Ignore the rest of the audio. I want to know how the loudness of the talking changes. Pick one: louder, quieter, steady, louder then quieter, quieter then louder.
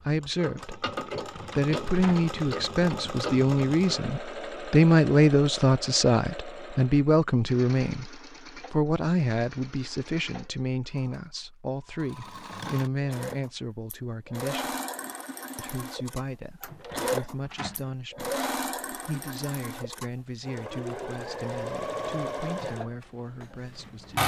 quieter.